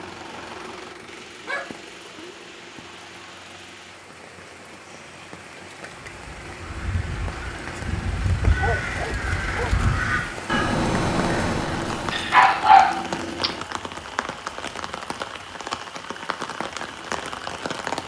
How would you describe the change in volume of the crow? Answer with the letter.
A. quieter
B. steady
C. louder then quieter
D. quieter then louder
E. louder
E.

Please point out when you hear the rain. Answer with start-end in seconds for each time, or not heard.
0.0-18.0.